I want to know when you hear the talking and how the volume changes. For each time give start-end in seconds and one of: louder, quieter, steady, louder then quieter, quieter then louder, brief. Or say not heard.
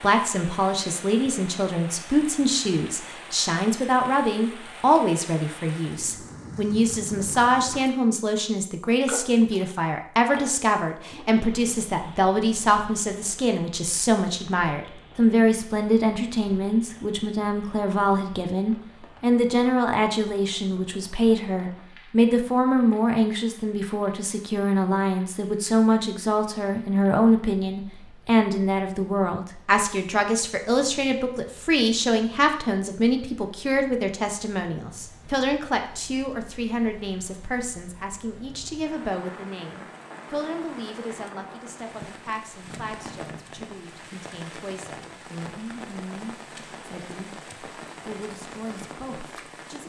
0.0-49.8 quieter.